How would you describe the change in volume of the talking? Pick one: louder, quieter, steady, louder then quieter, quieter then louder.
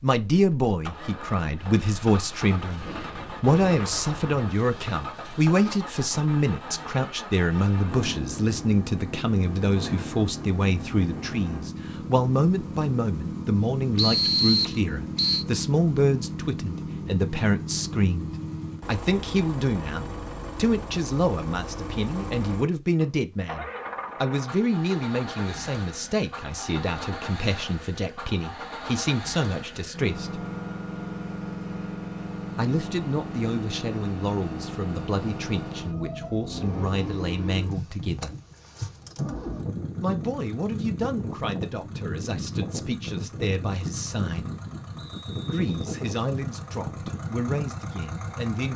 quieter.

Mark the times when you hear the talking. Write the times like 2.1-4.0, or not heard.
0.0-30.4, 32.5-38.4, 40.0-44.5, 45.5-48.7.